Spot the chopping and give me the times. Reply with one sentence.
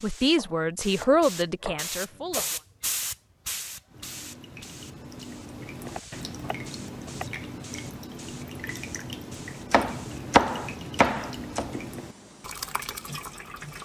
You can hear the chopping from 0.3 to 2.5 s, from 5.8 to 7.3 s and from 9.7 to 11.8 s.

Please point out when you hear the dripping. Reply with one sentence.
You can hear the dripping from 3.9 to 13.8 s.